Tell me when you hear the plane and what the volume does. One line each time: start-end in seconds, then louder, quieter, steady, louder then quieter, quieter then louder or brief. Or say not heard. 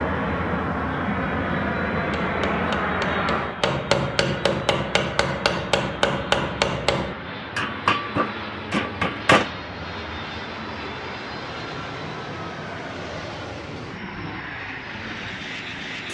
0.0-16.0 quieter.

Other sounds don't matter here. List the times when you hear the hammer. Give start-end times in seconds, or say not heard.
2.0-9.5.